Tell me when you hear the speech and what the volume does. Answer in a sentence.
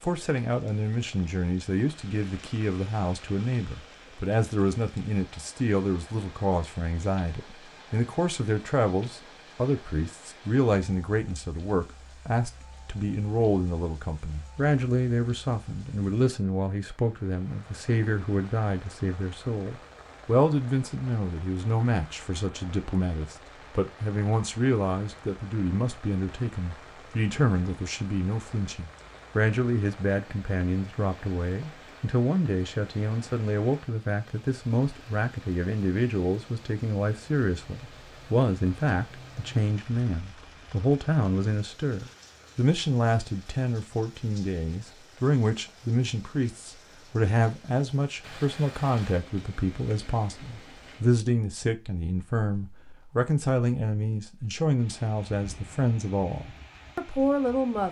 You can hear the speech from 0.0 to 57.8 s, at a steady volume.